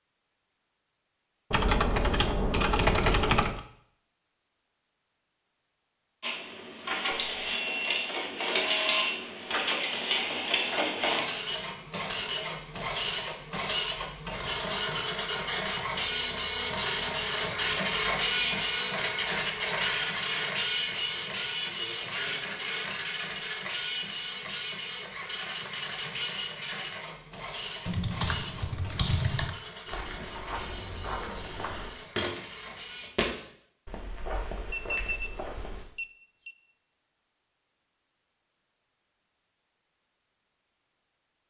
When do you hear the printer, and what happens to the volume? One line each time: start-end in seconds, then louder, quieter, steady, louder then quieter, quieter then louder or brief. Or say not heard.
6.2-33.1 louder then quieter.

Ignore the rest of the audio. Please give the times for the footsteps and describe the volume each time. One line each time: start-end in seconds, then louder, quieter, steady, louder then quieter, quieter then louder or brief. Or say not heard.
29.9-35.9 louder then quieter.